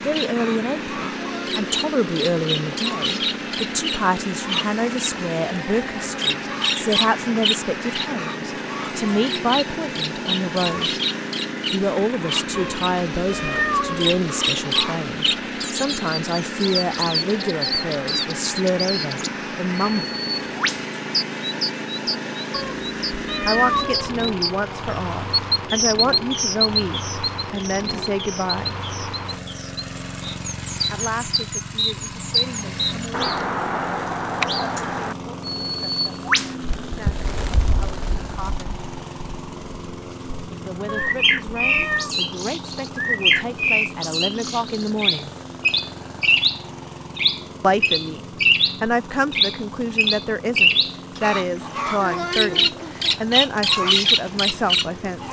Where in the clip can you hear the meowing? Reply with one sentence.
You can hear the meowing from 12.6 to 14.2 s, from 22.5 to 24.2 s and from 40.9 to 42.1 s.